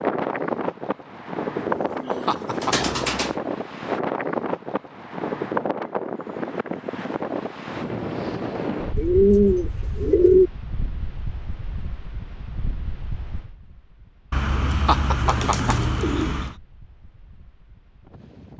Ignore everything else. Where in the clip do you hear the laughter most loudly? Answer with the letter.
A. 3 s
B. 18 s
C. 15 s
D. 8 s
C.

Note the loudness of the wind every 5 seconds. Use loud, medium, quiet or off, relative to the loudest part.
loud, loud, quiet, quiet.